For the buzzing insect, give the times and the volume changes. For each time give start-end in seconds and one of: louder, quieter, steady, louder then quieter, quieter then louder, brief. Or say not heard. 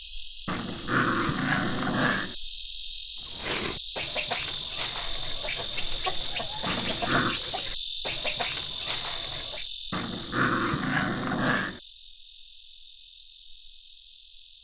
0.0-14.5 louder then quieter.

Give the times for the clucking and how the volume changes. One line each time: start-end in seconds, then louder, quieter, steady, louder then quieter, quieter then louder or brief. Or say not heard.
3.2-9.7 steady.